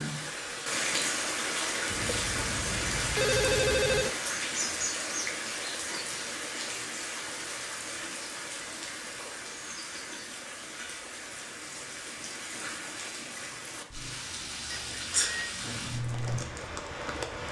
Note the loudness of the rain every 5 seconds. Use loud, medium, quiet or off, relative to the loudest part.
loud, medium, medium, loud.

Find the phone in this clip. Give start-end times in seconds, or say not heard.
1.9-4.2, 14.7-15.7.